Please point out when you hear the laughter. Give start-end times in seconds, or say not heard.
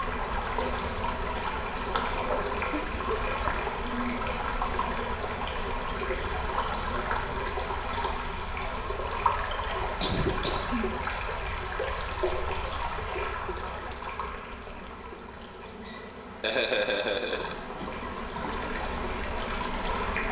2.7-3.5, 10.0-10.9, 15.8-17.6.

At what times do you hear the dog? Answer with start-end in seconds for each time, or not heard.
not heard.